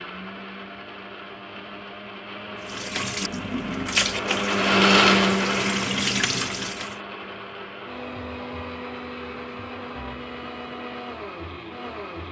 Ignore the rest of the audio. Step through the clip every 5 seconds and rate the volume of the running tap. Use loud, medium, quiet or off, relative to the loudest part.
loud, loud, off.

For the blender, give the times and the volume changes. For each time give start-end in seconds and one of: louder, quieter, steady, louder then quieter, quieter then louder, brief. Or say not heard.
0.0-12.2 louder then quieter.